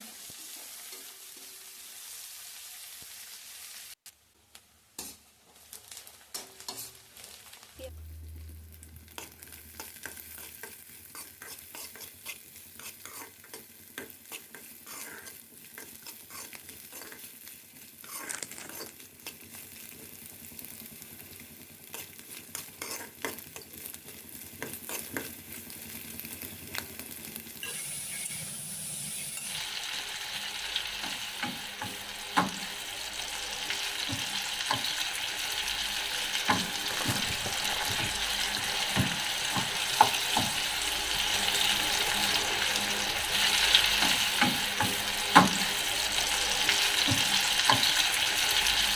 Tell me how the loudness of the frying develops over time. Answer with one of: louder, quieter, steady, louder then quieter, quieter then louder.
louder.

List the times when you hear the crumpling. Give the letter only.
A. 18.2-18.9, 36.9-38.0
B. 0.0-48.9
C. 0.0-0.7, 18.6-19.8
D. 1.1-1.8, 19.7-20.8
A.